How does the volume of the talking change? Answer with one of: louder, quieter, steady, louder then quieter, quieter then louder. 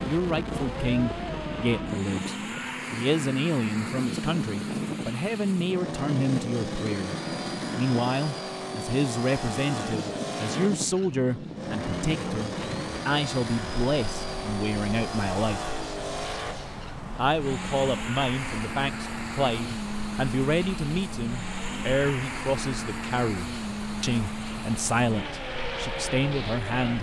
steady.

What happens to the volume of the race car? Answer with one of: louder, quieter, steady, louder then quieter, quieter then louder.
steady.